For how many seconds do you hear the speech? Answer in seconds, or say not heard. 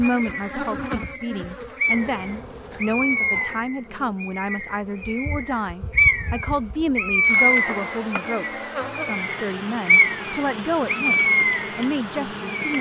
13 s.